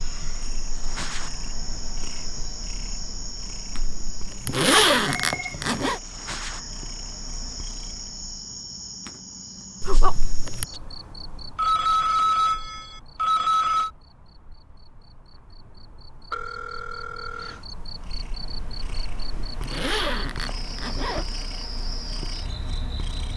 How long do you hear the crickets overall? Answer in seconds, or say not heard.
23 s.